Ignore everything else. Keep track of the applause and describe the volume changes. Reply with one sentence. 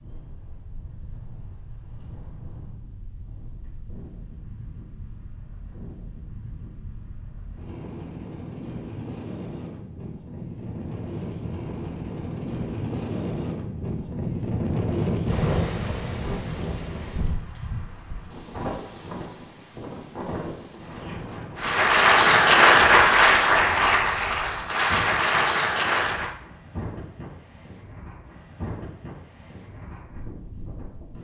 The loudness of the applause goes down.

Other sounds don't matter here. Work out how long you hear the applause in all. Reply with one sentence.
You can hear the applause for 5 seconds altogether.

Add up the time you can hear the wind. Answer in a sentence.
You can hear the wind for 31 seconds altogether.